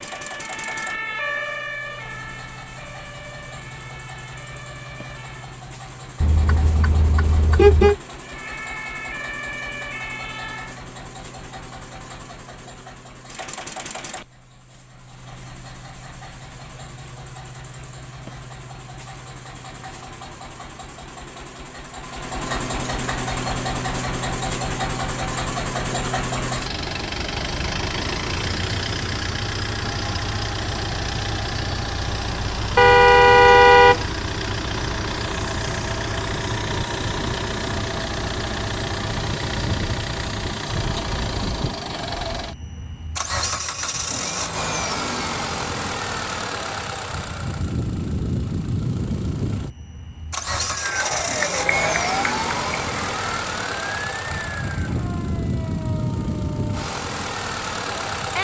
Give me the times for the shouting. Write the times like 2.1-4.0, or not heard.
not heard.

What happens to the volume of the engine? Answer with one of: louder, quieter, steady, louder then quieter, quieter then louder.
louder.